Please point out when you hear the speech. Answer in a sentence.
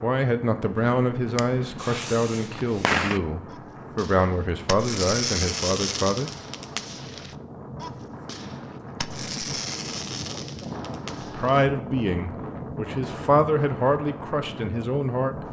The speech can be heard from 0.0 to 6.3 s and from 11.2 to 15.4 s.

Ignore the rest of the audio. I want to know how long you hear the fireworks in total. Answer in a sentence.
You can hear the fireworks for 11 seconds altogether.